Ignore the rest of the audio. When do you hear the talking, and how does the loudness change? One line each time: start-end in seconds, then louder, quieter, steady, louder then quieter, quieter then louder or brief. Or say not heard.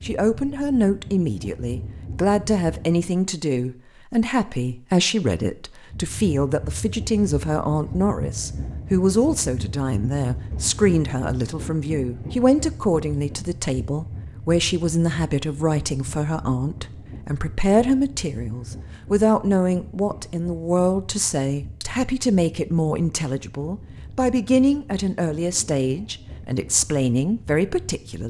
0.0-28.2 steady.